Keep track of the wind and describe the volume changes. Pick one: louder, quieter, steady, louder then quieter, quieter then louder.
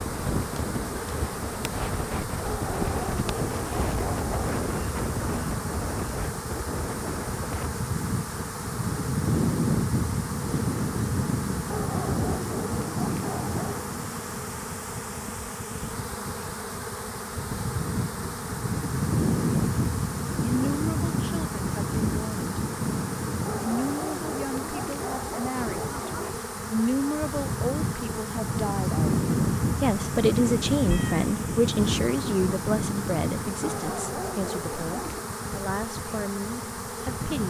steady.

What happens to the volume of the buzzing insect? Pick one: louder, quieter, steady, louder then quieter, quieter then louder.
steady.